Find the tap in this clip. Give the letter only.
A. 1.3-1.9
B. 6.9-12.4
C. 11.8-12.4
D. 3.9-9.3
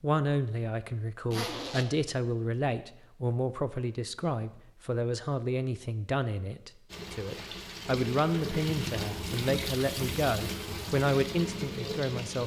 B.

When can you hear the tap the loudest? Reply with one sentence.
The loudest moment of the tap is at 9 seconds.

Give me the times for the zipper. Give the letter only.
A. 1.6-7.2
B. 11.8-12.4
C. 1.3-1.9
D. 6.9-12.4
C.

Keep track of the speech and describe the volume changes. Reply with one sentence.
The loudness of the speech stays about the same.